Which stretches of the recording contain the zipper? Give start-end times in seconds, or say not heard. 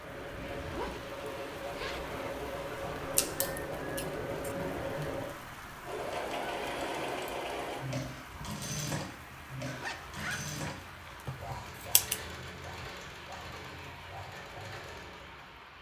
0.2-1.1, 1.7-2.1, 9.7-11.2.